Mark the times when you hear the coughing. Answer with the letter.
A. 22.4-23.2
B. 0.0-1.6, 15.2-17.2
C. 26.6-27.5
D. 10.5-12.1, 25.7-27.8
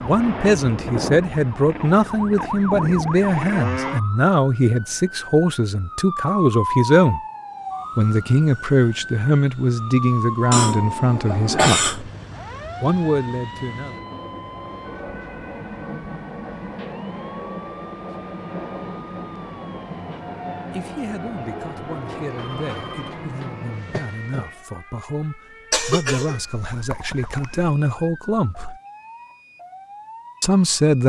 D.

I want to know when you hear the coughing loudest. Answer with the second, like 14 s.
12 s.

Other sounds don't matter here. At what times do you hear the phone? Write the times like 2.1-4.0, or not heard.
22.4-23.2.